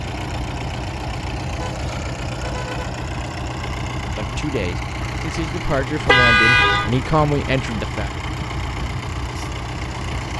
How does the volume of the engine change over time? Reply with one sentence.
The volume of the engine stays about the same.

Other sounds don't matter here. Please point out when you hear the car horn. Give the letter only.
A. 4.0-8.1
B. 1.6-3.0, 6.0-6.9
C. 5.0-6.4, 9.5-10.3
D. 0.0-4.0
B.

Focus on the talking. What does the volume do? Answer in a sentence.
The volume of the talking goes up.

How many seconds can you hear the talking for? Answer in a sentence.
You can hear the talking for 4 seconds altogether.